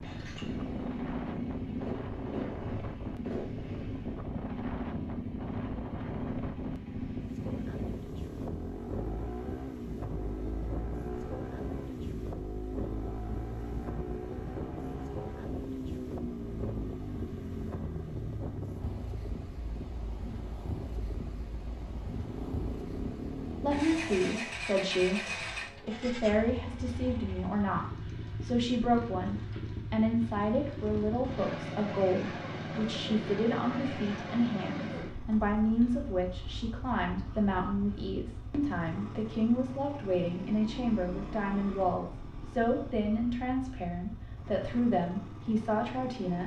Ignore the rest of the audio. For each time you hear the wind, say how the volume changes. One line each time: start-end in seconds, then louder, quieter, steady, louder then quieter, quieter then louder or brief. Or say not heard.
0.0-24.2 steady.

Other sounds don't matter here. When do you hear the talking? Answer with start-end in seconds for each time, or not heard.
23.6-46.4.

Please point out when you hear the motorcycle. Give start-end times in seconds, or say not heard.
0.0-46.4.